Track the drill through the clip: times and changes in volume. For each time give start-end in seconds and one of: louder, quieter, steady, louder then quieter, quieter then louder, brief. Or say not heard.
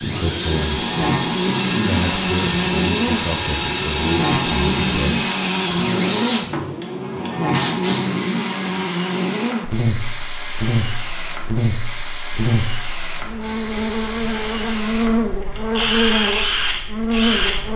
0.0-17.7 steady.